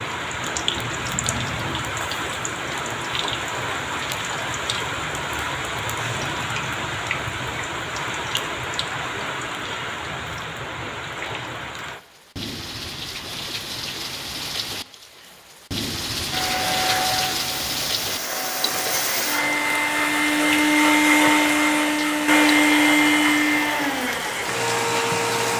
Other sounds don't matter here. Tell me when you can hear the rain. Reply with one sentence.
You can hear the rain from 0.0 to 25.5 s.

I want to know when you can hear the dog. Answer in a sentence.
The dog can't be heard in this clip.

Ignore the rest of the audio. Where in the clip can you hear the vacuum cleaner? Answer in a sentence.
You can hear the vacuum cleaner from 16.3 to 25.5 s.